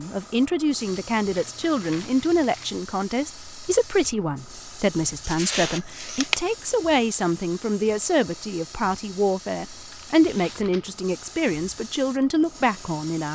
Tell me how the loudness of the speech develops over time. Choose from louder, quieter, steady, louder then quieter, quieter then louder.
steady.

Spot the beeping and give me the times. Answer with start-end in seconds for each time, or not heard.
5.2-6.4.